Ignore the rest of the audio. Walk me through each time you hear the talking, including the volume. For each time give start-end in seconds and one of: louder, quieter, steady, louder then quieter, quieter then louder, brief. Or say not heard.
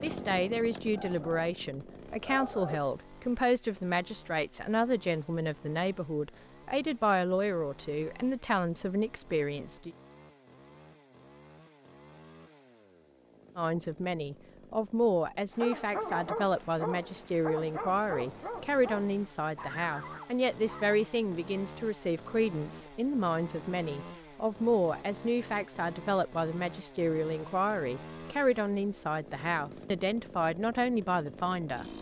0.0-9.9 steady
13.6-31.9 steady.